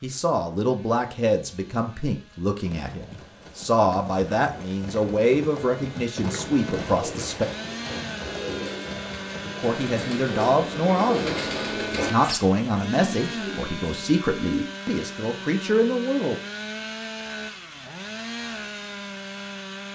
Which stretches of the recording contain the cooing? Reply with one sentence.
You can hear the cooing from 6.2 to 14.7 s.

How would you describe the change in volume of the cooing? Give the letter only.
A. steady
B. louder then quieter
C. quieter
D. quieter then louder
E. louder
B.